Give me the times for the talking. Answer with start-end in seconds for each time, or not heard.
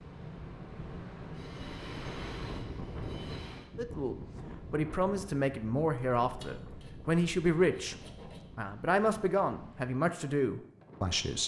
3.8-8.0, 8.6-11.4.